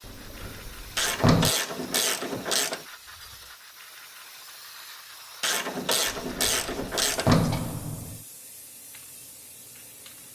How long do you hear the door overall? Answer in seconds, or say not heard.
4 s.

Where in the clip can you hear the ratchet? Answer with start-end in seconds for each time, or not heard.
0.9-2.9, 5.4-7.5.